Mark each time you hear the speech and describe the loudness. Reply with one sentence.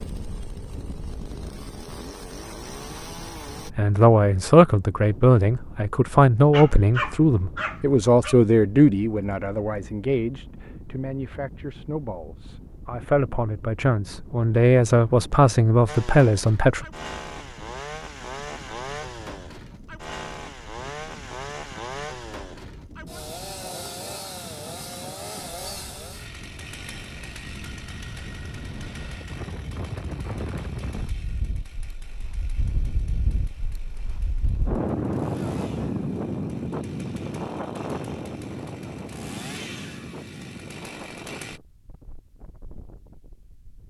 You can hear the speech from 3.6 to 16.9 s, getting quieter then louder.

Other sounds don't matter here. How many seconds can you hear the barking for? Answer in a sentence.
You can hear the barking for 2 seconds altogether.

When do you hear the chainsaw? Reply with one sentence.
The chainsaw can be heard from 0.0 to 3.7 s and from 15.8 to 41.6 s.